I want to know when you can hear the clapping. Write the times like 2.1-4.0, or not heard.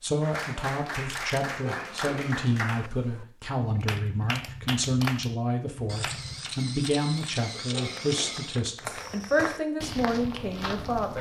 0.2-9.4.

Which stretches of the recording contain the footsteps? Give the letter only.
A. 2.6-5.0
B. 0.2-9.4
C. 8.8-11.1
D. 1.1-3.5
C.